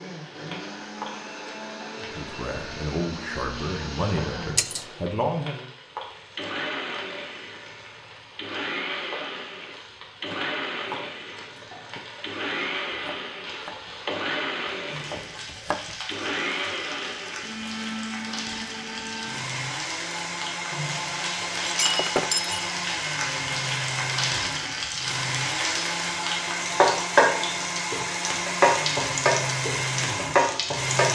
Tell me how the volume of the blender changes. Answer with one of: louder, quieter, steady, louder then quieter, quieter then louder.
louder.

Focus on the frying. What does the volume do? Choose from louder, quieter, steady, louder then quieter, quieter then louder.
louder.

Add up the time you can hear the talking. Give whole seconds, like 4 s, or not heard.
4 s.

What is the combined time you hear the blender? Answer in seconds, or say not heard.
31 s.